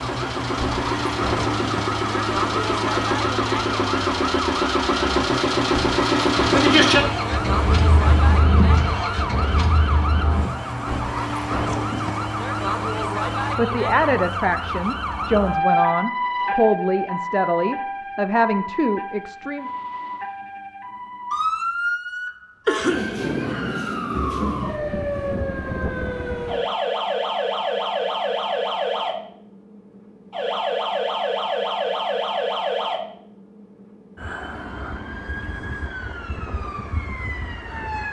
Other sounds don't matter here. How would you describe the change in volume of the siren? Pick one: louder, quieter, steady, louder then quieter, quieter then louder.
steady.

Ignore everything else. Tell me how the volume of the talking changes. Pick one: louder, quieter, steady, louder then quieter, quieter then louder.
steady.